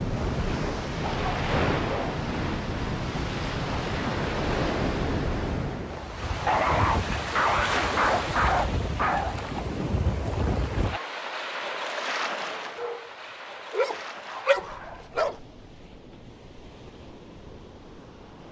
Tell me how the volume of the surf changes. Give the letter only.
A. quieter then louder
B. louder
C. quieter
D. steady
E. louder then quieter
C.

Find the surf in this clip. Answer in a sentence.
The surf can be heard from 0.0 to 18.4 s.